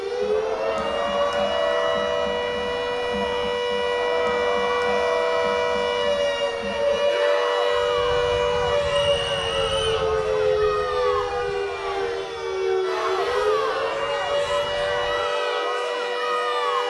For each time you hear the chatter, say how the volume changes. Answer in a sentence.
The chatter can be heard from 0.0 to 16.8 s, at a steady volume.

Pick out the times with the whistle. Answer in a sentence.
The whistle can be heard from 8.9 to 10.1 s.